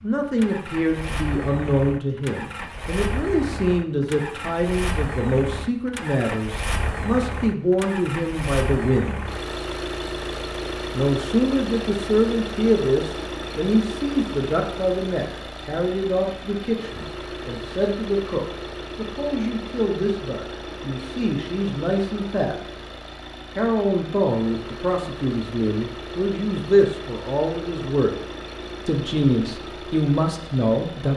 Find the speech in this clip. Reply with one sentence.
The speech can be heard from 0.0 to 9.2 s, from 10.9 to 22.6 s, from 23.6 to 28.1 s and from 28.9 to 31.1 s.